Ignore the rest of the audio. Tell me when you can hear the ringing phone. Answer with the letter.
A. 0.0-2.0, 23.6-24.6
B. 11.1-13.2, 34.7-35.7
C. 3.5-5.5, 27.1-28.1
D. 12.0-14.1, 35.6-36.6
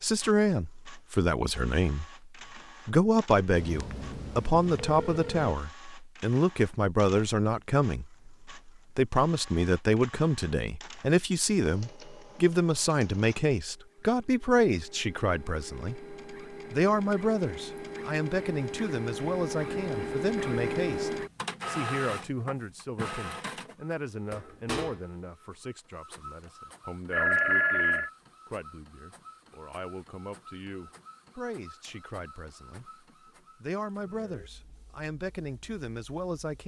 C.